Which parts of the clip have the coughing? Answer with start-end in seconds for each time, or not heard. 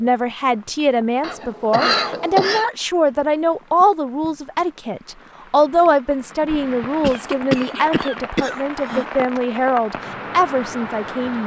1.2-2.6, 7.0-9.4.